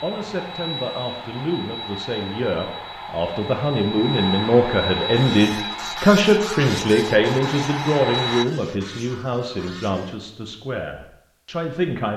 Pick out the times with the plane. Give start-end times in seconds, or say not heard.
0.0-8.4.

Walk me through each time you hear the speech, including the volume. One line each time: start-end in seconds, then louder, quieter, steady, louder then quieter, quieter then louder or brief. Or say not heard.
0.0-12.1 louder then quieter.